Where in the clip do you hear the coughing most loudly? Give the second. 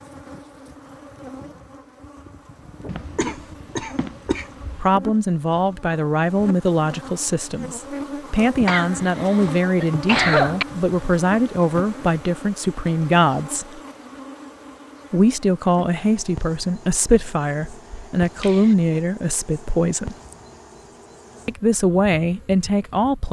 10 s.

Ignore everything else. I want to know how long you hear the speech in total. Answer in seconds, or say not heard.
16 s.